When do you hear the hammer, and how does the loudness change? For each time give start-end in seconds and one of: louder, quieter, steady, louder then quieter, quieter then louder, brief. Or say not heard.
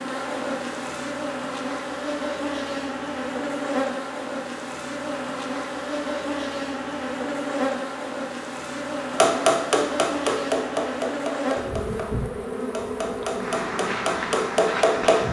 9.2-15.2 quieter then louder.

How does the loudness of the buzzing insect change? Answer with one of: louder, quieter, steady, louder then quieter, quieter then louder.
steady.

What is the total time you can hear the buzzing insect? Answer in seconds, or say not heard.
15 s.